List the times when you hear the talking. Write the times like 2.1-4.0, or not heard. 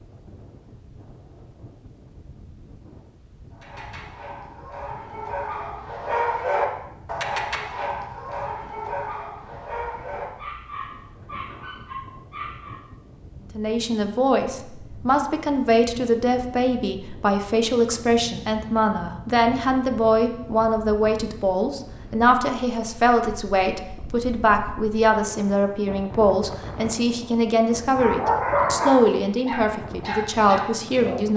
13.6-31.3.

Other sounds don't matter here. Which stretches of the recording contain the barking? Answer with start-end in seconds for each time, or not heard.
3.5-12.8, 27.9-31.3.